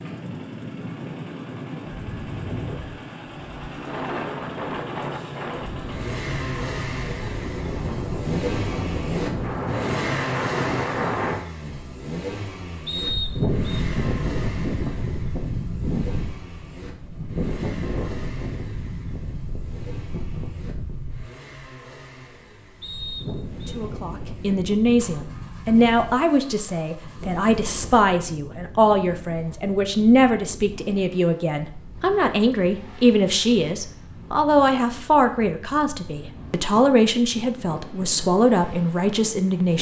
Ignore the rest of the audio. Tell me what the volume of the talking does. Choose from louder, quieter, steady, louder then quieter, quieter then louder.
steady.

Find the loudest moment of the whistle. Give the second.
13 s.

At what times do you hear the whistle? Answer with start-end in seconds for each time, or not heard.
12.8-13.6, 22.8-23.8.